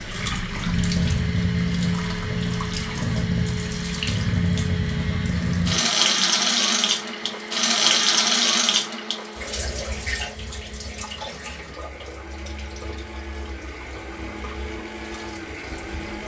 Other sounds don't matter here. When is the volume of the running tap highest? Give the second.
8 s.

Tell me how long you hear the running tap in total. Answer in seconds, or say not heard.
16 s.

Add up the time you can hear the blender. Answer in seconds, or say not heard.
16 s.